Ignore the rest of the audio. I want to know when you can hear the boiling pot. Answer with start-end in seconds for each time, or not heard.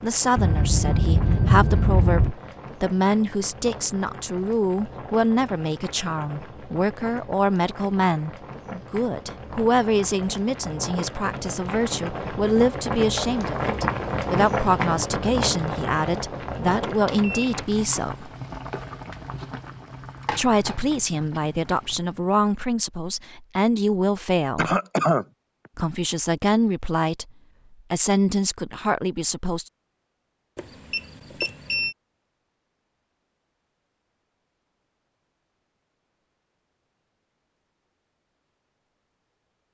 0.0-22.4.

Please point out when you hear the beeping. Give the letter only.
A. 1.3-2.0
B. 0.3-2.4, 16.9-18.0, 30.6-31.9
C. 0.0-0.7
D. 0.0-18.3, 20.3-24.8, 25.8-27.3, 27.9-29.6
B.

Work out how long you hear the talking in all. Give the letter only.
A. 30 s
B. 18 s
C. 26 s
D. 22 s
C.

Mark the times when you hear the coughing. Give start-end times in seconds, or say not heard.
24.6-25.2.